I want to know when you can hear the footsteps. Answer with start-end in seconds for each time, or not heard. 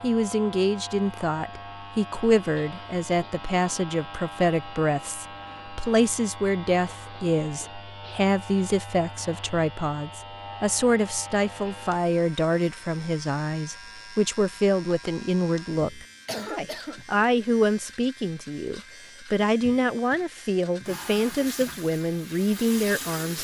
not heard.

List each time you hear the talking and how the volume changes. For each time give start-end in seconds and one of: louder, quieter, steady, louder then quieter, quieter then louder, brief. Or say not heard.
0.0-23.4 steady.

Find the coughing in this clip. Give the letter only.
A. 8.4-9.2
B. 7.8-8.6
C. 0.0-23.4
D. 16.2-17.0
D.